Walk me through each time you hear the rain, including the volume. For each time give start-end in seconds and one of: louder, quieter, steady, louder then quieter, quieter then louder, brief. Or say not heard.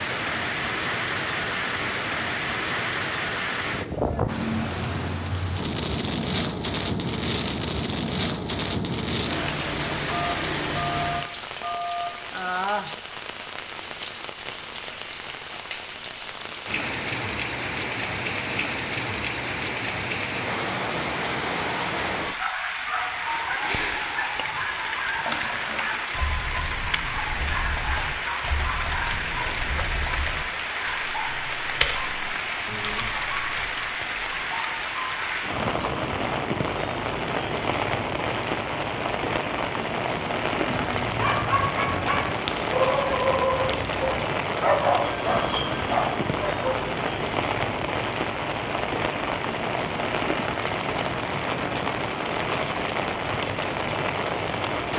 0.0-54.9 steady.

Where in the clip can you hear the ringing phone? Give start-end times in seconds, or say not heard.
10.1-12.1, 45.0-46.4.